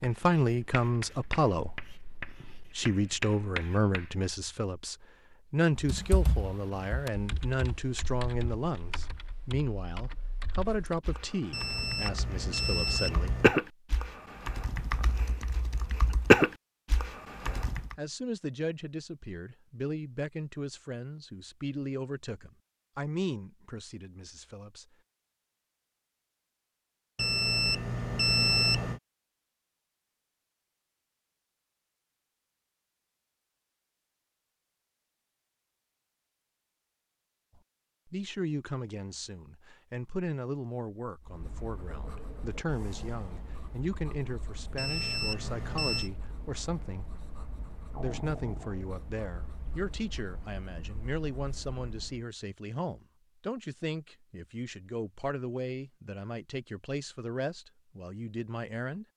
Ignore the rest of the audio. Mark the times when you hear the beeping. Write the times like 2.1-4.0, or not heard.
11.5-13.6, 27.1-29.0, 44.8-46.1.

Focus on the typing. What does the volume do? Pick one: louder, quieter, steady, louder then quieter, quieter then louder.
quieter then louder.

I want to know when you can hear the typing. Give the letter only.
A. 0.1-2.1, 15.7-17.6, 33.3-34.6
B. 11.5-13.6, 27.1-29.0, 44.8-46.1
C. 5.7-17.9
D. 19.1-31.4
C.